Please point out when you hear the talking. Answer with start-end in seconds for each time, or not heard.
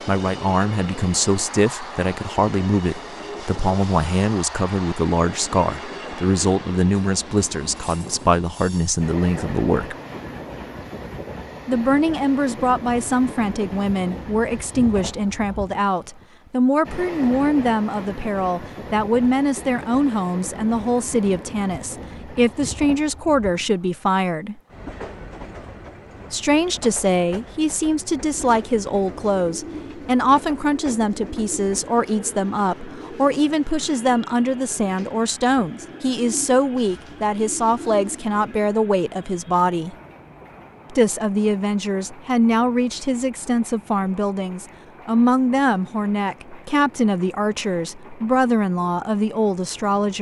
0.1-9.9, 11.7-24.6, 26.3-40.0, 40.9-50.1.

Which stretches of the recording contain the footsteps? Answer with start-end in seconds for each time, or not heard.
not heard.